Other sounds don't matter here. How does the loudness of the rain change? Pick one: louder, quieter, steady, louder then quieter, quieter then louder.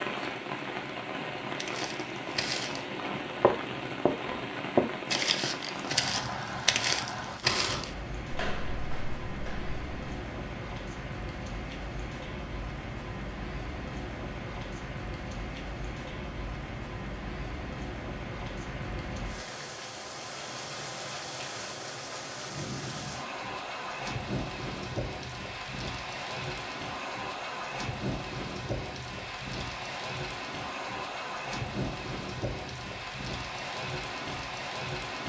steady.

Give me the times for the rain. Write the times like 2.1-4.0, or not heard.
0.0-35.2.